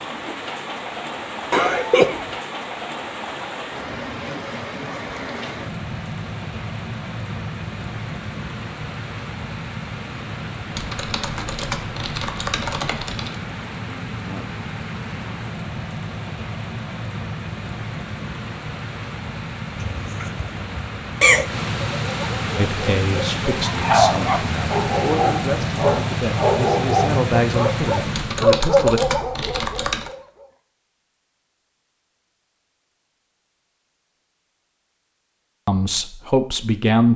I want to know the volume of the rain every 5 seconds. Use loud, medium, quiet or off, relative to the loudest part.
medium, medium, medium, medium, loud, loud, off, off.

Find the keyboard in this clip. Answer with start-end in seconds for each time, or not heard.
10.7-13.3, 28.1-30.1.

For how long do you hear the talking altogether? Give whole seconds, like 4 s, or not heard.
8 s.